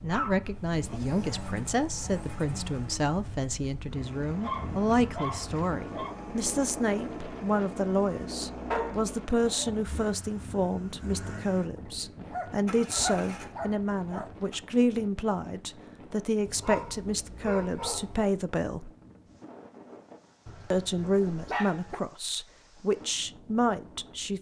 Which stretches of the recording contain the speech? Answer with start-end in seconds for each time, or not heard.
0.0-18.9, 20.7-24.3.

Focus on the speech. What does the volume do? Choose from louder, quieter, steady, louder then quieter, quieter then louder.
steady.